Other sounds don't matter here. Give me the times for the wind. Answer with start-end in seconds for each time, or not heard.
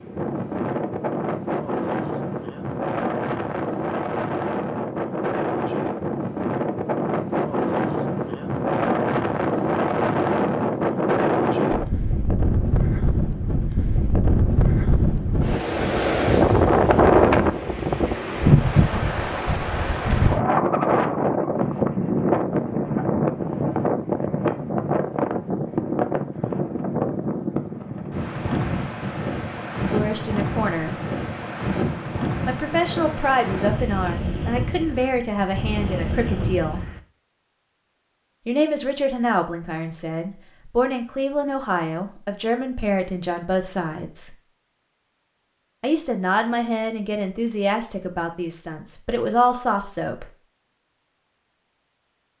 0.0-37.0.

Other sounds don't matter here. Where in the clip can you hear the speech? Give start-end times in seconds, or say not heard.
29.9-30.9, 32.5-36.9, 38.5-44.4, 45.8-50.3.